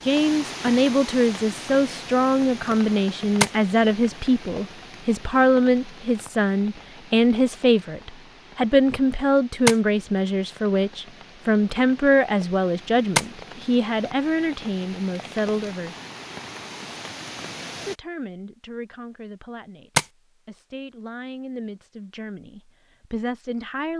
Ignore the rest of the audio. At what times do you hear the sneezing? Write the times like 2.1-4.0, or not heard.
not heard.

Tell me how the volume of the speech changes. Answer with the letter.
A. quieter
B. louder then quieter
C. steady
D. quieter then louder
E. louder
A.